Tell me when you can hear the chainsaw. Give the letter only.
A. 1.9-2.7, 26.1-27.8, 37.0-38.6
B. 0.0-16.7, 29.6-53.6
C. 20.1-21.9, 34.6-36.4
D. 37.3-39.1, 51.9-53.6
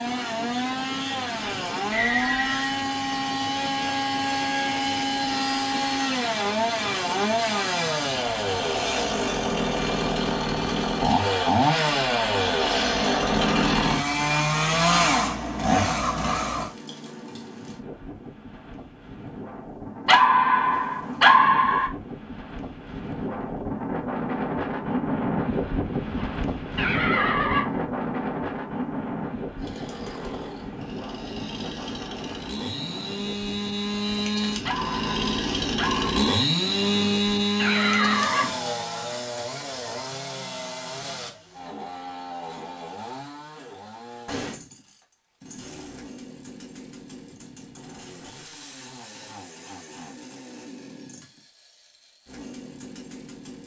B.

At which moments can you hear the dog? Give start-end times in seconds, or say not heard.
20.1-21.9, 34.6-36.4.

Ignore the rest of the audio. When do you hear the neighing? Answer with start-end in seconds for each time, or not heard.
1.9-2.7, 26.1-27.8, 37.0-38.6.